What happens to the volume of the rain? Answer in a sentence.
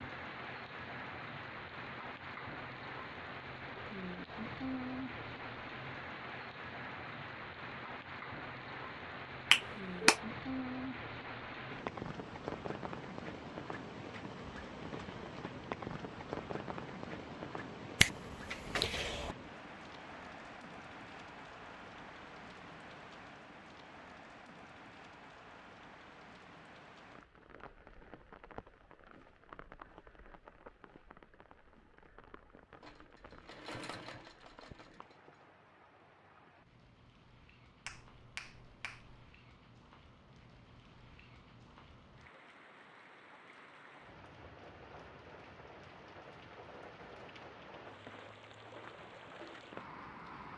The loudness of the rain goes down, then up.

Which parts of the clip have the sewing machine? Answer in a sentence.
The sewing machine can be heard from 32.8 to 35.4 s.